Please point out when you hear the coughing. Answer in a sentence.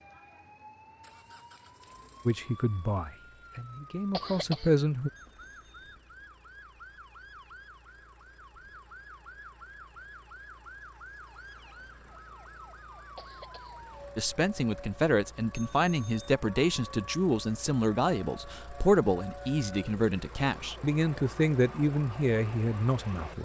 You can hear the coughing from 4.1 to 4.7 s and from 13.2 to 14.1 s.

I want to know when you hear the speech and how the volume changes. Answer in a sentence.
You can hear the speech briefly from 2.2 to 5.1 s; and from 14.2 to 23.4 s, at a steady volume.